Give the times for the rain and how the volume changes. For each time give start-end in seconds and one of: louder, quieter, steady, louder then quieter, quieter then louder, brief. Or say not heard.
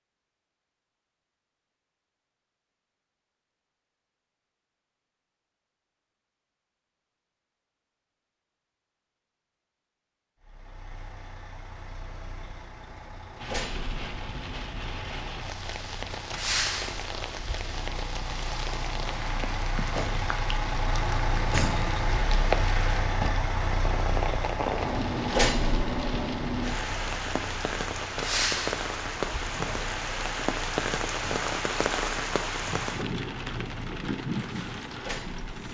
13.4-35.6 louder.